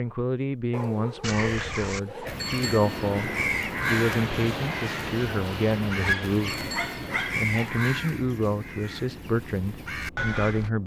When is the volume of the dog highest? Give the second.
6 s.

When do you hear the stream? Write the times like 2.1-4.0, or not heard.
not heard.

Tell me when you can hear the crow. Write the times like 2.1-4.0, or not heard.
1.2-10.7.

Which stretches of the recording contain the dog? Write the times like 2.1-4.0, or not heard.
0.7-2.5, 6.0-7.8.